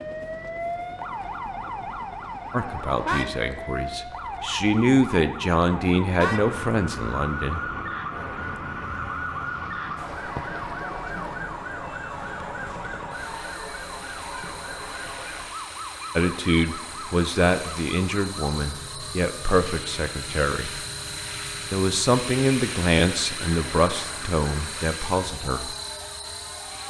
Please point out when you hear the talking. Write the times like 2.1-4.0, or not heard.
2.5-7.6, 16.1-20.7, 21.7-25.7.